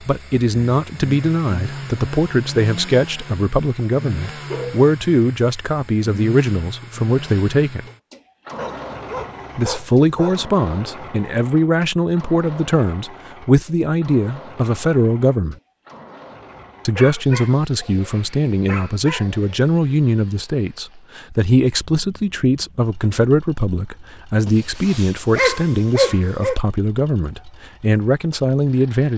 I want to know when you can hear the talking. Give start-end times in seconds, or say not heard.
0.1-7.8, 9.6-15.6, 16.9-29.1.